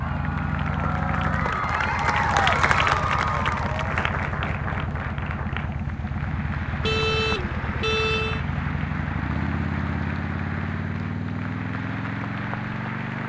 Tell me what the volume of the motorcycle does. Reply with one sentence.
The loudness of the motorcycle stays about the same.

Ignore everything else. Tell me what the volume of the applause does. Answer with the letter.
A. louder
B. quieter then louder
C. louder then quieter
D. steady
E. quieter
E.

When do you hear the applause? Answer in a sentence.
The applause can be heard from 0.0 to 13.2 s.